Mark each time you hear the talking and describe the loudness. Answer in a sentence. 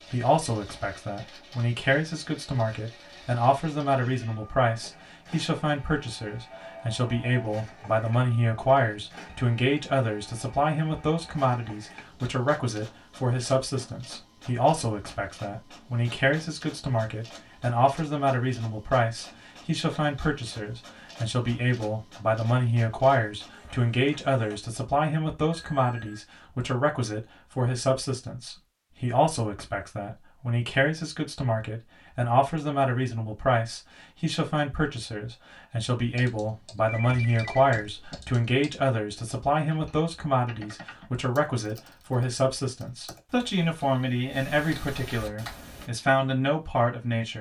The talking can be heard from 0.1 to 47.3 s, at a steady volume.